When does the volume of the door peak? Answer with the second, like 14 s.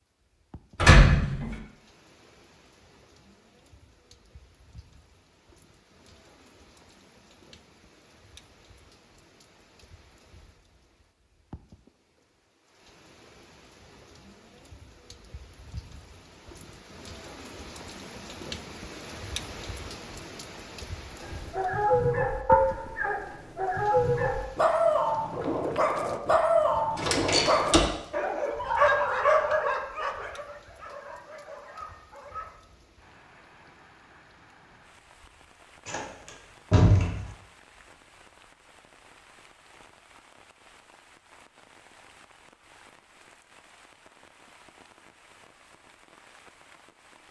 1 s.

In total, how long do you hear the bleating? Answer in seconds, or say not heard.
not heard.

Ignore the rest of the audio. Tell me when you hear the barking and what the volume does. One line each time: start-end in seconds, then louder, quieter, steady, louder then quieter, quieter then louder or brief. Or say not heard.
21.2-32.5 quieter.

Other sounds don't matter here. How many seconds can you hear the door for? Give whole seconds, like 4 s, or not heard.
3 s.